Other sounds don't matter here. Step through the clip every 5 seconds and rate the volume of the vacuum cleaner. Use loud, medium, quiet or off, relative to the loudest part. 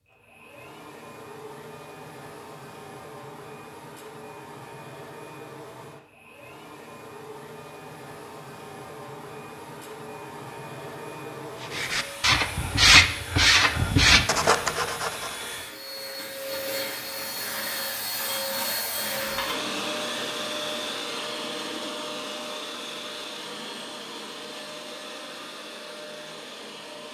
medium, medium, medium, loud, loud, medium.